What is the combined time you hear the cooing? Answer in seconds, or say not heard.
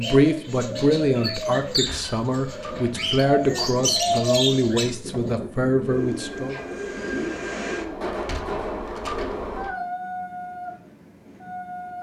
8 s.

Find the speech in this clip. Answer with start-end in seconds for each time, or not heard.
0.0-6.5.